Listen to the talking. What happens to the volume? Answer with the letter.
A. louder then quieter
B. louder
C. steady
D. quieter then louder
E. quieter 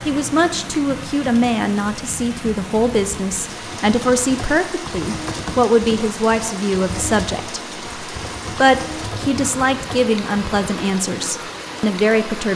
C.